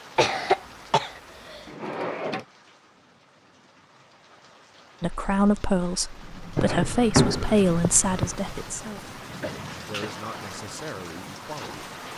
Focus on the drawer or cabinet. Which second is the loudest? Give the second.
7 s.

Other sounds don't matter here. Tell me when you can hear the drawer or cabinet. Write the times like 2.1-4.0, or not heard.
1.6-2.5, 6.5-8.3.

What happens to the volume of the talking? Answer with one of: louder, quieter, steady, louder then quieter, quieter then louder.
quieter.